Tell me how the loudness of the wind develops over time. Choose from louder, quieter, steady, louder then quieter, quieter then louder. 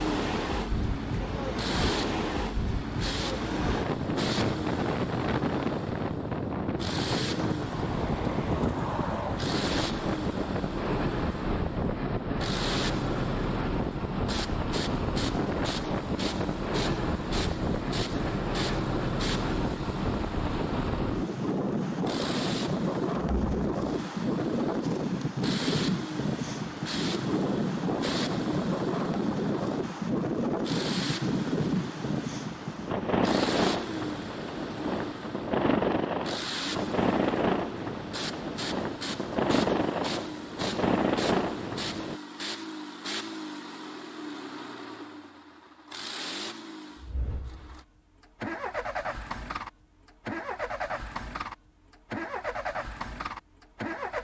steady.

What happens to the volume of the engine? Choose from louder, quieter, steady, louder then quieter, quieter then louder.
steady.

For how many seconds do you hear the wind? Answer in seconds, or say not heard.
42 s.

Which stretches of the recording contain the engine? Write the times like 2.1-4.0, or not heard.
0.0-54.1.